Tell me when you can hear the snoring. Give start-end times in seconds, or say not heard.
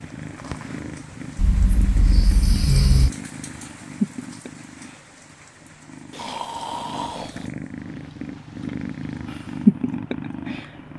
1.4-3.1, 6.1-7.5.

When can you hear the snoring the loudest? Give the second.
3 s.